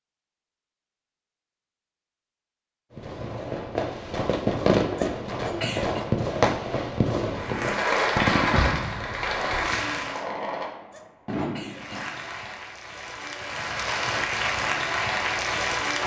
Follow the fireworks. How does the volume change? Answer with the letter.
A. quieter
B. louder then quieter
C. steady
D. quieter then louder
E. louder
A.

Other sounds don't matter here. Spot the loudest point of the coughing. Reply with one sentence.
The volume of the coughing peaks at 6 seconds.